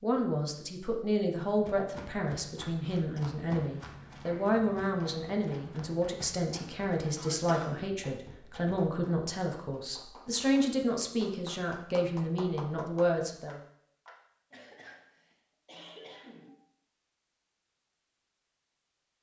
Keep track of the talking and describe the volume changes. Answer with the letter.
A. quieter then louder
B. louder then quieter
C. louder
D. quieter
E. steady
E.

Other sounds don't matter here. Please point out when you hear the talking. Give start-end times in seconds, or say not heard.
0.0-13.6.